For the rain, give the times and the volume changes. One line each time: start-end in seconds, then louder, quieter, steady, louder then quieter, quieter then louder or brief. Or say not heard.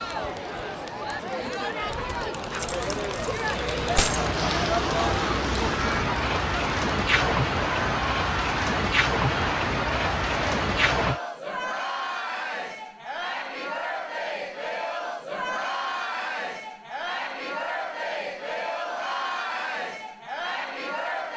0.0-11.2 louder.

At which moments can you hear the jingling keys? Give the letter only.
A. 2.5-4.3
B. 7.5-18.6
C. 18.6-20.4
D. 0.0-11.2
A.